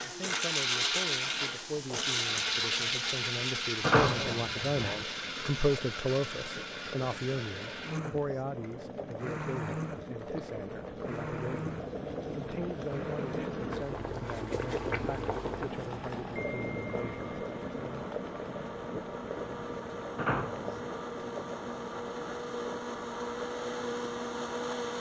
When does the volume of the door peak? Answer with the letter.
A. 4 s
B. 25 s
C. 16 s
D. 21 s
A.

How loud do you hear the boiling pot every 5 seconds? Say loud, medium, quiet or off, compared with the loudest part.
quiet, medium, loud, loud, medium.